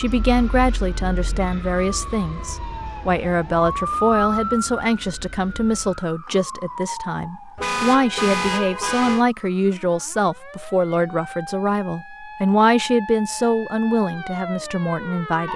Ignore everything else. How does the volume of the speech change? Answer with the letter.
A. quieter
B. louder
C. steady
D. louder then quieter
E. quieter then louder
C.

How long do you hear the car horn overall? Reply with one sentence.
The car horn can be heard for 2 seconds in total.